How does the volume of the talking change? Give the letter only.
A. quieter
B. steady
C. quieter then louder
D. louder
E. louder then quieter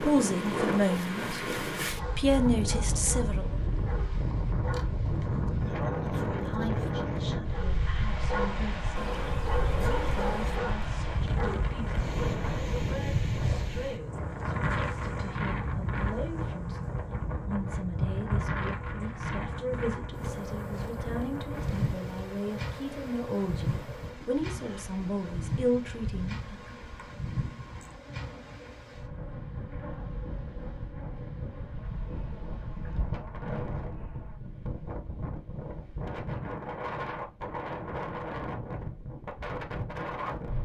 C.